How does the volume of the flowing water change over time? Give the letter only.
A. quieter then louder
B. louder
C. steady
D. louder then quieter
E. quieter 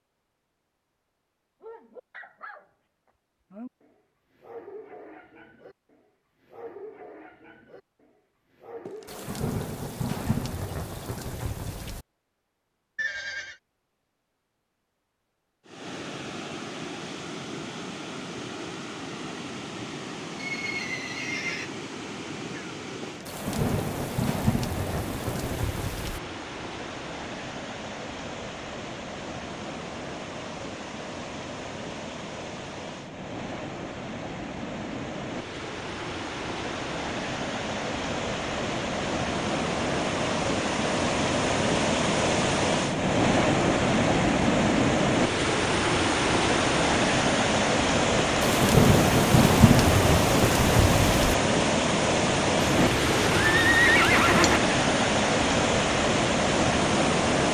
B.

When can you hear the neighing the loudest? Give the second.
54 s.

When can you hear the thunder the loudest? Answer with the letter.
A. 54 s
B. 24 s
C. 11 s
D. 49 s
D.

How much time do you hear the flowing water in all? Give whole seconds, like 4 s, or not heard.
42 s.